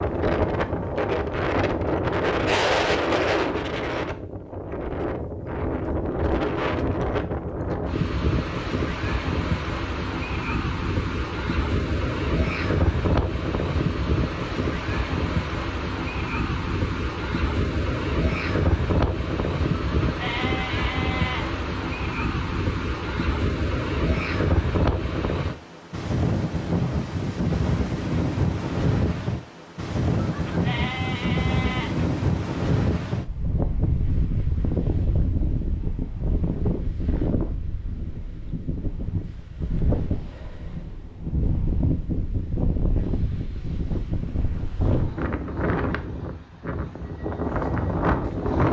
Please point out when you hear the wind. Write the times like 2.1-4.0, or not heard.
0.0-48.6.